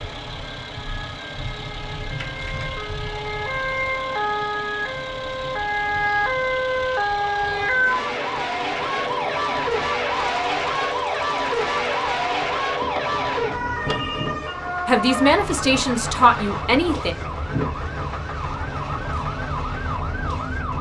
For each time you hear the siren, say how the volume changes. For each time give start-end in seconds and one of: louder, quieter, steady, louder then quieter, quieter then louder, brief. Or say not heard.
0.0-20.7 louder then quieter.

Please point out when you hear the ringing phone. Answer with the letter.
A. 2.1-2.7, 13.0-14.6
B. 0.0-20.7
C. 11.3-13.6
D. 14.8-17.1
A.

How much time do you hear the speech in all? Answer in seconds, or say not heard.
2 s.